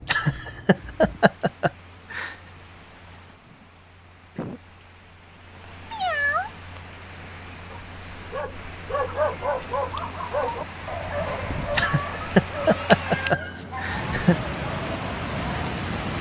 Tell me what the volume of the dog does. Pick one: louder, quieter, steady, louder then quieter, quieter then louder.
quieter.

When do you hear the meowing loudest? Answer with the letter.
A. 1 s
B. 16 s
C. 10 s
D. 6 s
D.